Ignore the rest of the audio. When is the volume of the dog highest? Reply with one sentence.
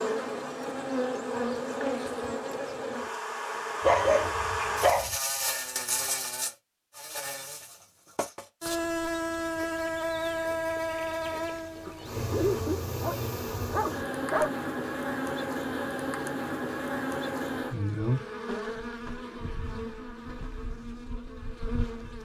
The loudest moment of the dog is at 4 seconds.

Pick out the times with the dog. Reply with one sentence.
You can hear the dog from 3.9 to 5.2 s and from 11.8 to 14.5 s.